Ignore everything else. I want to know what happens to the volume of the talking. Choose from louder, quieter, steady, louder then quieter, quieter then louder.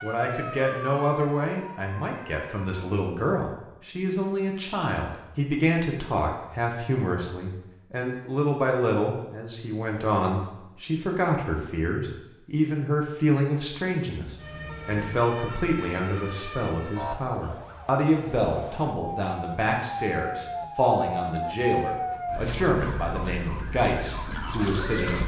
steady.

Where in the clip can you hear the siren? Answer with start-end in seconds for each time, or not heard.
0.0-3.1, 14.3-25.2.